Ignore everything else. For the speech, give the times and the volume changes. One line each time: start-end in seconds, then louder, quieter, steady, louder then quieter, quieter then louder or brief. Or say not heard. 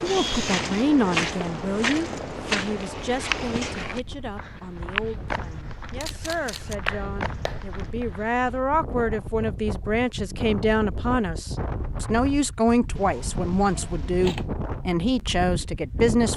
0.0-16.3 quieter then louder.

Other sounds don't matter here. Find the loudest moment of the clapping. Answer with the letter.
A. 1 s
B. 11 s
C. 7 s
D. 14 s
C.